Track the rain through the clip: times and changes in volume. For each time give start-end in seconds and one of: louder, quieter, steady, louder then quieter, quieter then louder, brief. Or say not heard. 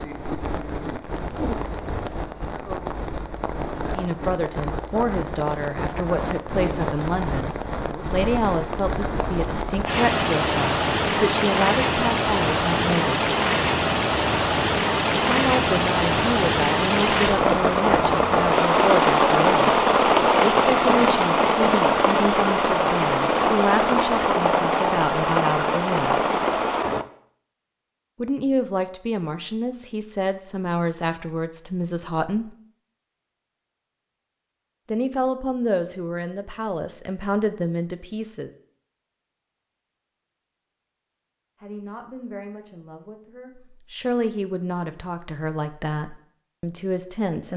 0.0-27.1 louder.